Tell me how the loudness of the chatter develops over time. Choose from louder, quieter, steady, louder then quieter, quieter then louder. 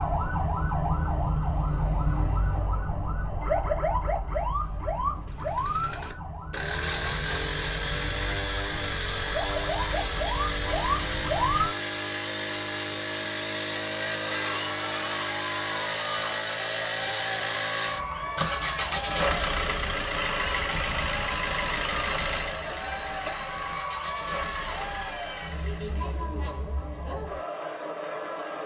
steady.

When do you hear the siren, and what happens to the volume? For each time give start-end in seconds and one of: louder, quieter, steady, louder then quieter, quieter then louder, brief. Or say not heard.
0.0-11.8 quieter then louder.